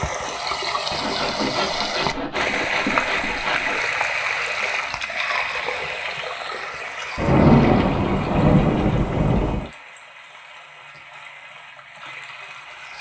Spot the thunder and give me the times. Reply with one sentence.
The thunder can be heard from 7.2 to 9.7 s.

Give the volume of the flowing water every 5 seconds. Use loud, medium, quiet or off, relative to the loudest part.
loud, medium, quiet.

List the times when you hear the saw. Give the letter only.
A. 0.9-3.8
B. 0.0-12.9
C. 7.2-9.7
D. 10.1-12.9
A.